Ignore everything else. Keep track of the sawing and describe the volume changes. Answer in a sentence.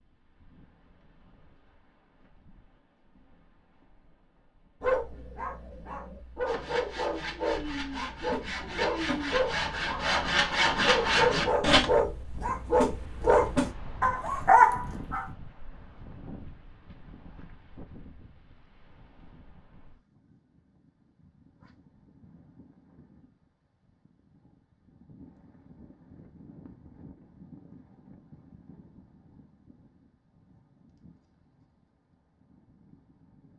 The loudness of the sawing goes up.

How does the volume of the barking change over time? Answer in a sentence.
The loudness of the barking goes up.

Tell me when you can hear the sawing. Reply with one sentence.
The sawing can be heard from 6.5 to 11.9 s.